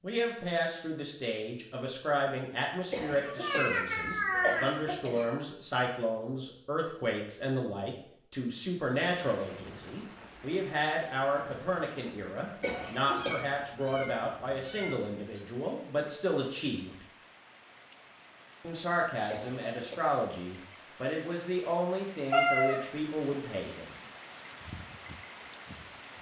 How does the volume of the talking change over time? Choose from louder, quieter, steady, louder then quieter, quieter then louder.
steady.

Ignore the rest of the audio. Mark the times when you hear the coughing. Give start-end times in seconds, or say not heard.
2.9-5.3, 12.6-13.4, 19.2-20.1.